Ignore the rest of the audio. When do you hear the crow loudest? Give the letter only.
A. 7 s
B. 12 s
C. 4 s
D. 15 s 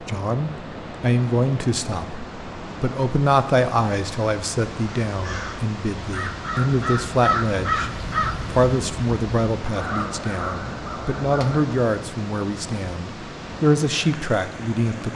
A.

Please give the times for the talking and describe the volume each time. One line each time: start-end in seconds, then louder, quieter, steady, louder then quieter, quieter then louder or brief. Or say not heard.
0.1-15.1 steady.